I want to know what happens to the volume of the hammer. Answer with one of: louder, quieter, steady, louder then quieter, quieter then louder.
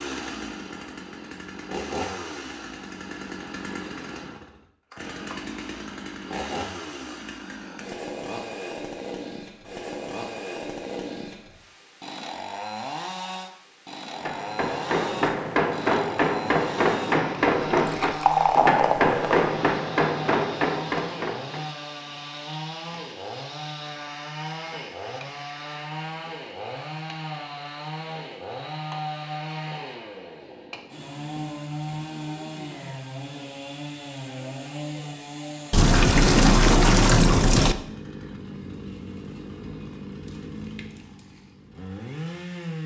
steady.